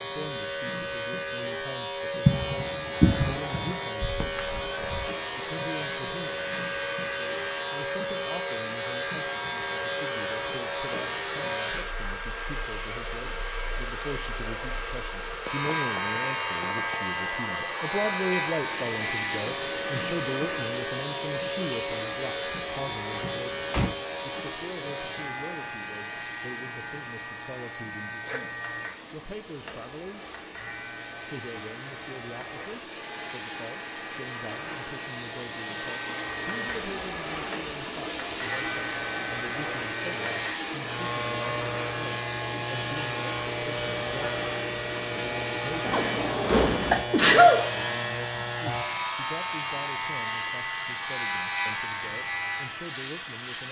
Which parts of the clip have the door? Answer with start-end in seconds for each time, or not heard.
4.0-5.1, 23.2-23.9, 45.9-47.0.